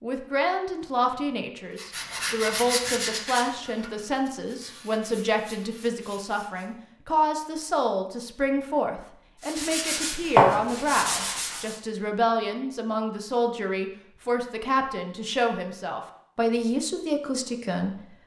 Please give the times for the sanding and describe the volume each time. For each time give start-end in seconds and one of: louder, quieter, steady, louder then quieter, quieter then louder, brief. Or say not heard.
1.8-6.8 quieter
9.4-11.8 brief.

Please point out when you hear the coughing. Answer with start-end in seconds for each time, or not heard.
not heard.